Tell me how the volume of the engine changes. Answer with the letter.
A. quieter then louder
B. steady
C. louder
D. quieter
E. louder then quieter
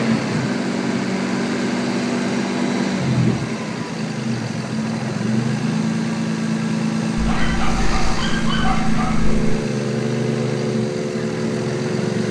B.